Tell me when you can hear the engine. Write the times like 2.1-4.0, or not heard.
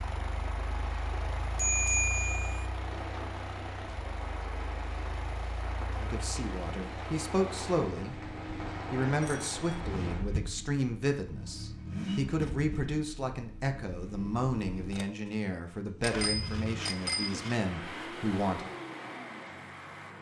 0.0-20.1.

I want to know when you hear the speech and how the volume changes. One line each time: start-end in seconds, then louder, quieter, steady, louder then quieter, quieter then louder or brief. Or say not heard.
6.0-18.7 steady.